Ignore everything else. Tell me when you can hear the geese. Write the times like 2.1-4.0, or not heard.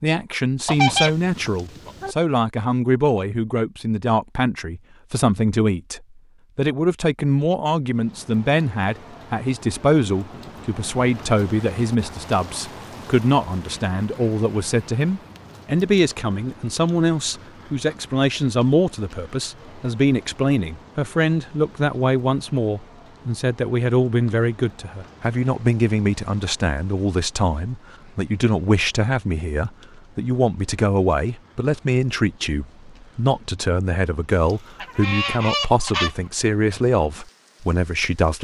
0.7-2.1, 34.5-36.1.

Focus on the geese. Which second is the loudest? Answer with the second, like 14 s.
1 s.